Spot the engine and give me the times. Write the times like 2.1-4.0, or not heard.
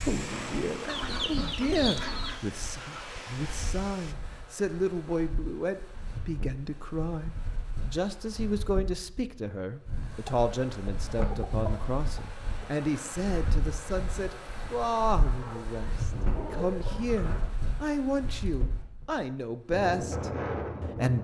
0.0-4.2.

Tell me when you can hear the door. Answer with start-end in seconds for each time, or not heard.
0.1-1.3, 16.1-17.8.